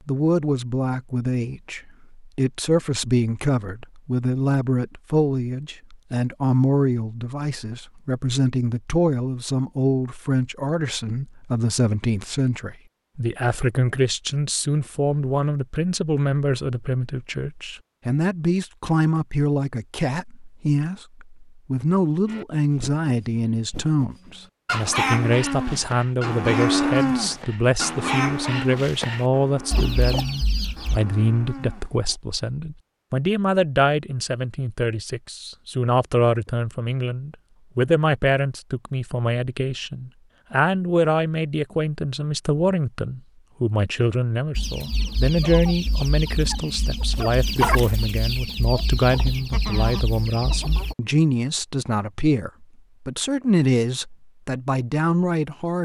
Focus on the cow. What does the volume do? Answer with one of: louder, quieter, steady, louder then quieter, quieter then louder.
louder then quieter.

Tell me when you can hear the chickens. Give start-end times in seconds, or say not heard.
24.6-31.0, 44.5-51.0.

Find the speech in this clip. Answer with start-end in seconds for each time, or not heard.
0.1-55.8.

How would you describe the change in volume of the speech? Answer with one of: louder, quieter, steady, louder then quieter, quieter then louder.
steady.